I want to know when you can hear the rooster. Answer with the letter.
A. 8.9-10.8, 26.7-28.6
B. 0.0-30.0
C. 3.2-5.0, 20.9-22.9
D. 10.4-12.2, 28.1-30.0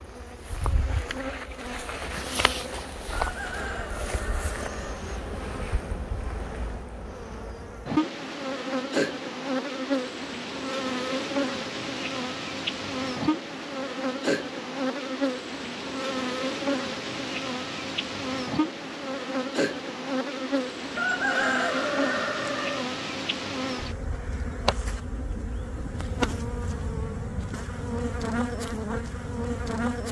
C.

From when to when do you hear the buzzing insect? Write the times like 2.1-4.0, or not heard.
0.0-30.0.